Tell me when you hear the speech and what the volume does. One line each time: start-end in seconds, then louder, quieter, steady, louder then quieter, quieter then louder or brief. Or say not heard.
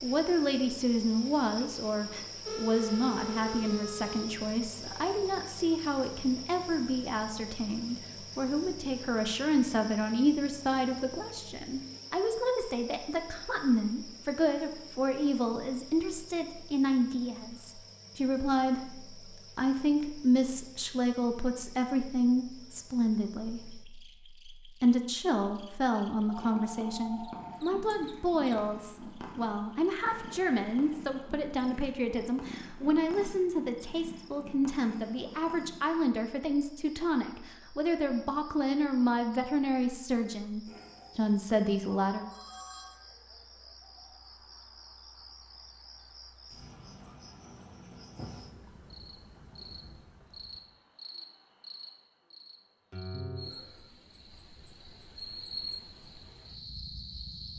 0.0-23.9 steady
24.8-42.2 steady.